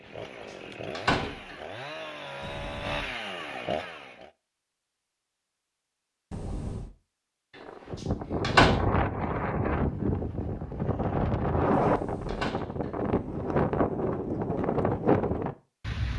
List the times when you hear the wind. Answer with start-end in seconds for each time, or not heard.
7.6-16.1.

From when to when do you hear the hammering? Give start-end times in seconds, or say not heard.
not heard.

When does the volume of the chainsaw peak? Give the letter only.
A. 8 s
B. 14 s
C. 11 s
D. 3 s
D.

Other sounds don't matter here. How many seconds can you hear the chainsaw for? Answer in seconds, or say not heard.
4 s.